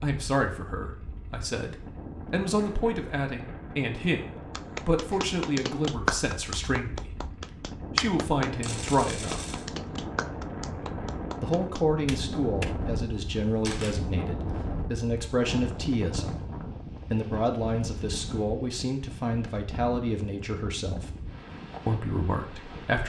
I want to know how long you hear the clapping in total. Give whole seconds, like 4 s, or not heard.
8 s.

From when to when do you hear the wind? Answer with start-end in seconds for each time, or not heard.
0.1-23.0.